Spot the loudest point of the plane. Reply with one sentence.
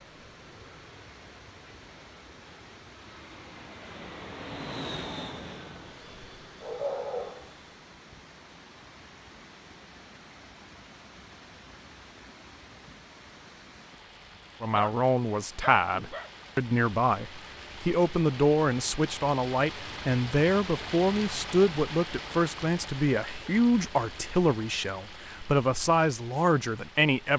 The loudest moment of the plane is at 5 seconds.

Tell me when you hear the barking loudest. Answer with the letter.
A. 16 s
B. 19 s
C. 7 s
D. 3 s
C.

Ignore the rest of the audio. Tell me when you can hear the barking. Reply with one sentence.
You can hear the barking from 6.6 to 7.5 s and from 14.7 to 16.3 s.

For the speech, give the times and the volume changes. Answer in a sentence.
You can hear the speech from 14.6 to 27.3 s, at a steady volume.